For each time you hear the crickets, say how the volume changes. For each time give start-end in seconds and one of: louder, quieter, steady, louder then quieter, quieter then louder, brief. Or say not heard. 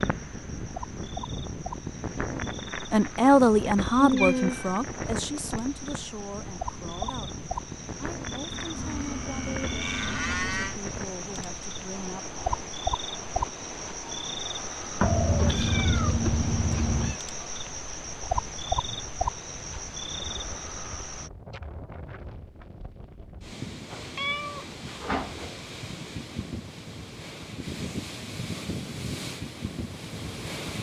0.0-21.3 louder.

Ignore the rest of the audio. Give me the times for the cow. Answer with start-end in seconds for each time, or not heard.
8.5-10.8.